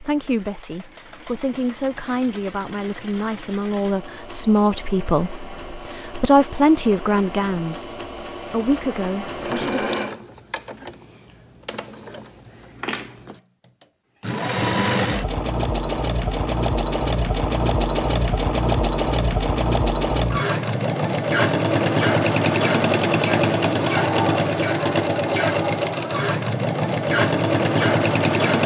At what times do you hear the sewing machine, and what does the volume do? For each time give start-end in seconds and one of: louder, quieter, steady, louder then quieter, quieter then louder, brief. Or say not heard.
0.0-28.6 louder.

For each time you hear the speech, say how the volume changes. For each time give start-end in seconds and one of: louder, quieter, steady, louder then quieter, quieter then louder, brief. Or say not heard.
0.0-9.9 louder then quieter.